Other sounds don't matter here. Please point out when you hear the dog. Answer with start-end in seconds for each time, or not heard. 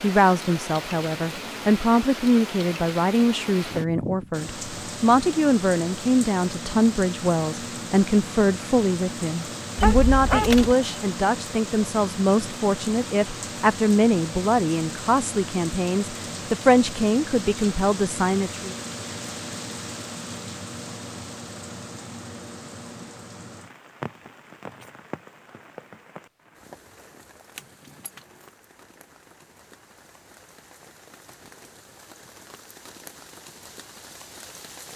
9.8-11.0.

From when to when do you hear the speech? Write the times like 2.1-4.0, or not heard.
0.0-18.7.